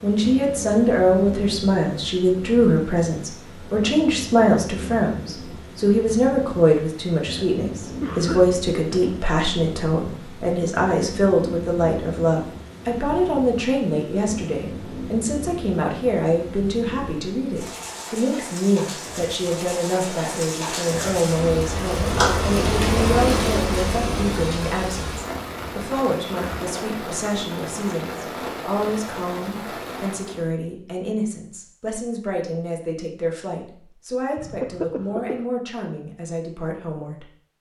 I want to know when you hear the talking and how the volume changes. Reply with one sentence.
You can hear the talking from 0.0 to 37.5 s, getting quieter.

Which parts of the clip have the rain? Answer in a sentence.
You can hear the rain from 0.0 to 30.5 s.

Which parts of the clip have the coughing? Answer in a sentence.
The coughing can be heard from 8.0 to 9.3 s and from 34.4 to 35.5 s.